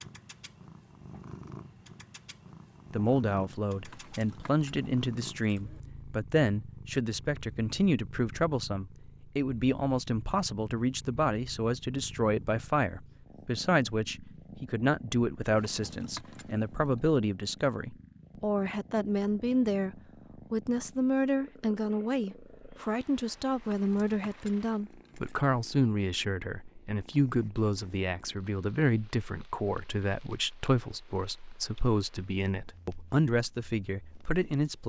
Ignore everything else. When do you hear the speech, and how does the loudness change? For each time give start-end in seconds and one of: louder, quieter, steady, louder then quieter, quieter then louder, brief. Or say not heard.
2.9-34.8 steady.